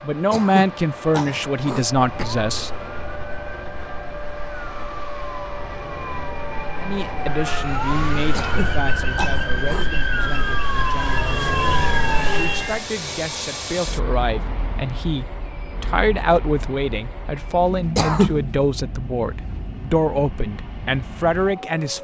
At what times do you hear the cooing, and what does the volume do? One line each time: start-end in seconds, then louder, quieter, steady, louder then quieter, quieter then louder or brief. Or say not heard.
not heard.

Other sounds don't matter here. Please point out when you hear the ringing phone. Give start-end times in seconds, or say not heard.
not heard.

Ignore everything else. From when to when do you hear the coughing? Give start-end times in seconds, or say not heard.
0.3-2.2, 8.3-9.9, 17.9-18.4.